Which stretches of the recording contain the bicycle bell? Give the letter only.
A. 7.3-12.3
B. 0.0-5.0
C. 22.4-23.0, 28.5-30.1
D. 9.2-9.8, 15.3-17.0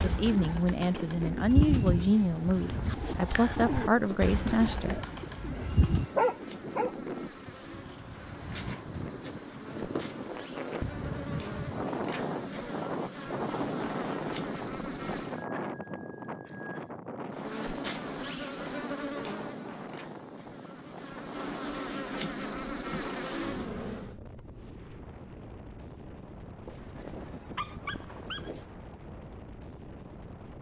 D.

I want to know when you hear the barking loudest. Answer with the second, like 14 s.
6 s.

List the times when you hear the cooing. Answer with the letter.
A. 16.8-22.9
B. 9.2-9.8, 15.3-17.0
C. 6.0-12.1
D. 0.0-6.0
D.